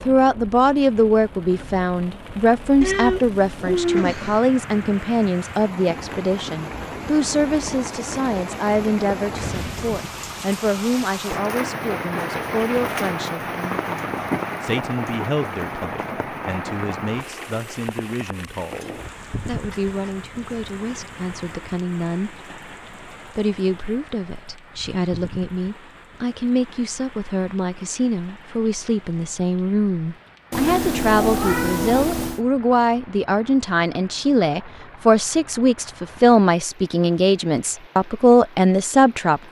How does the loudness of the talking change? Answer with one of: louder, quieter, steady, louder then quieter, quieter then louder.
quieter then louder.